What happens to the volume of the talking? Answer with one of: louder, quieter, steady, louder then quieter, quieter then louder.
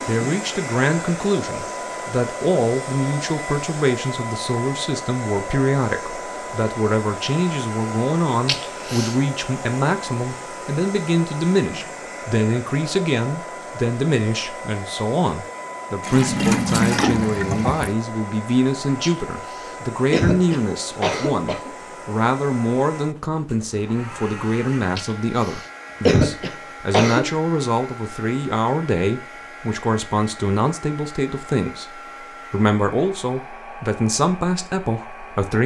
steady.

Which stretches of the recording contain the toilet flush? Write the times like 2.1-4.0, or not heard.
16.0-17.9.